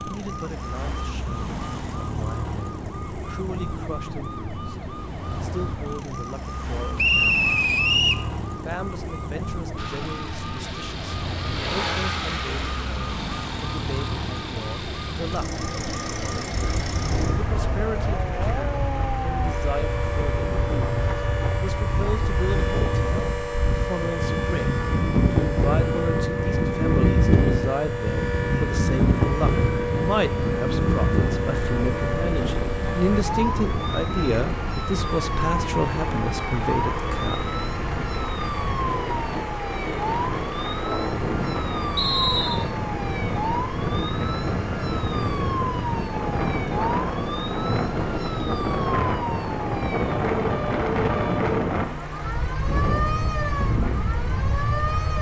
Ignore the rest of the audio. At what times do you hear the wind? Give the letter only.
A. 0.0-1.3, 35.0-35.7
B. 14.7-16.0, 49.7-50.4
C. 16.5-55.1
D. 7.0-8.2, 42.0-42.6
C.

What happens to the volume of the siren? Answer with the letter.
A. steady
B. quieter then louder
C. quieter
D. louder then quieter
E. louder
A.